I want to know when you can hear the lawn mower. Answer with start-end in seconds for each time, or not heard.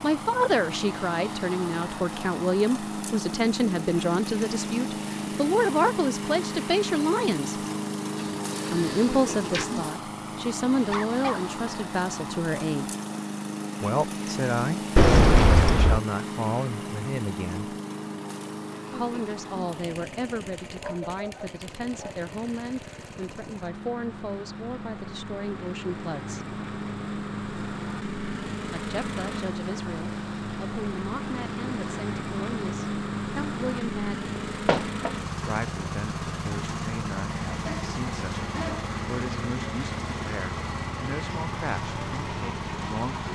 0.0-43.2.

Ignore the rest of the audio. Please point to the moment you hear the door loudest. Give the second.
15 s.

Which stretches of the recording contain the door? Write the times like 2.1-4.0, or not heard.
8.2-9.7, 14.9-16.0, 34.4-35.1.